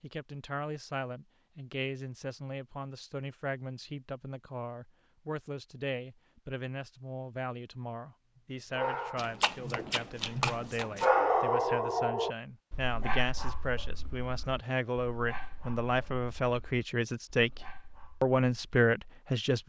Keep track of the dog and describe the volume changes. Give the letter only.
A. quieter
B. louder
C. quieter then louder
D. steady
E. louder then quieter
E.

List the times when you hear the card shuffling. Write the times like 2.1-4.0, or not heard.
9.2-11.1.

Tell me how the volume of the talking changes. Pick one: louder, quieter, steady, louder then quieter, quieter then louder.
louder.